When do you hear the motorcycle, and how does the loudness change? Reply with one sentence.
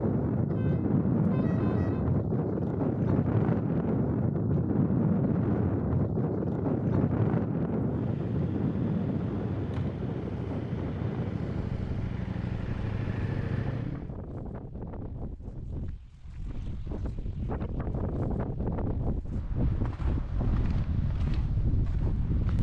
You can hear the motorcycle from 7.8 to 14.2 s, getting louder.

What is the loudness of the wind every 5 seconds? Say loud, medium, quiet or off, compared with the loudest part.
loud, loud, medium, medium, medium.